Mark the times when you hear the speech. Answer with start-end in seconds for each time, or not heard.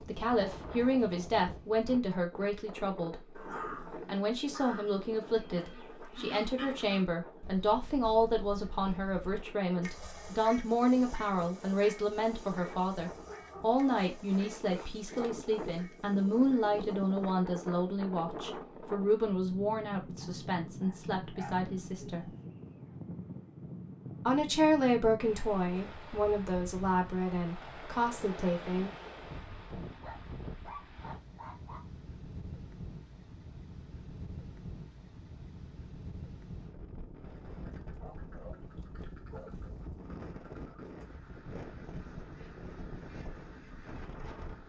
0.1-3.1, 4.0-22.2, 24.2-28.9.